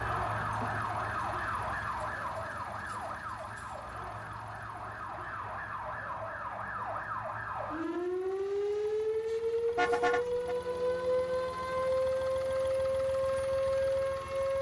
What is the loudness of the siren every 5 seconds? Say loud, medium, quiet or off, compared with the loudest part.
medium, loud, loud.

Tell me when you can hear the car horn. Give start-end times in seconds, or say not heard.
9.7-10.6.